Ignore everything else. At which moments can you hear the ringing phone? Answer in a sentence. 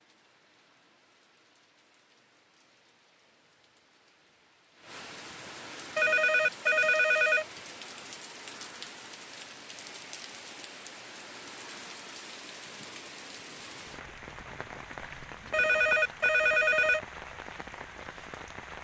You can hear the ringing phone from 6.0 to 7.5 s and from 15.5 to 17.0 s.